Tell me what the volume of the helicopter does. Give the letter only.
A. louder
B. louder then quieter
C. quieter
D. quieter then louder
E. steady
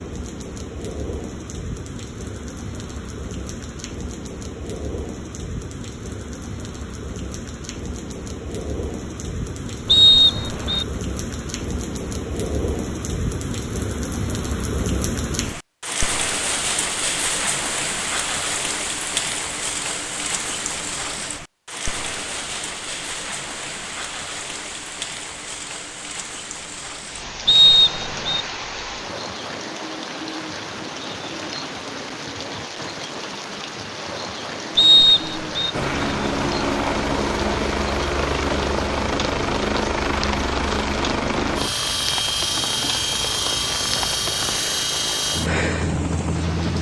E.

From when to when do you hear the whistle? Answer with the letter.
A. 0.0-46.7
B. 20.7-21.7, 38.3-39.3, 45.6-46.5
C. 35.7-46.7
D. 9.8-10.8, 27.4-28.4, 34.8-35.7
D.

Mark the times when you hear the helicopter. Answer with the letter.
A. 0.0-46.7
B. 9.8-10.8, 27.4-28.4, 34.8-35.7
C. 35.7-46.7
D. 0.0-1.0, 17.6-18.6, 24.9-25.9
C.